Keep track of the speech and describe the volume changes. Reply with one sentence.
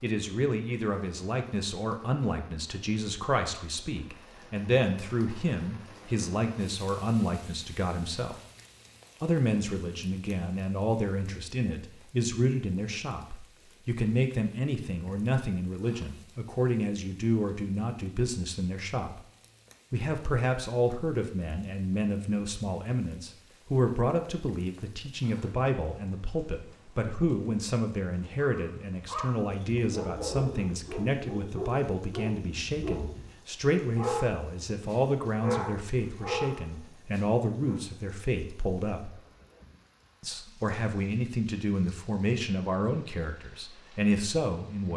The volume of the speech stays about the same.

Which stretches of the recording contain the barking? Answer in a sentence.
You can hear the barking from 28.4 to 37.8 s.